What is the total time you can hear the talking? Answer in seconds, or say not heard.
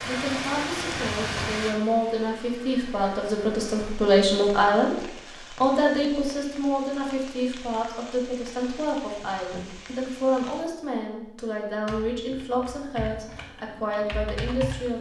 15 s.